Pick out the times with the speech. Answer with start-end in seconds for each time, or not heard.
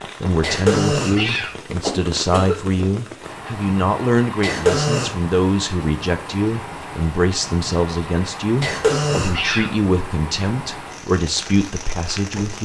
0.2-12.6.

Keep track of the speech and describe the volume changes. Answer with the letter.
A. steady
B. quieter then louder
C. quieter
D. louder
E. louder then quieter
A.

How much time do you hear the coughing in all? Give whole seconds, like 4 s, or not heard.
4 s.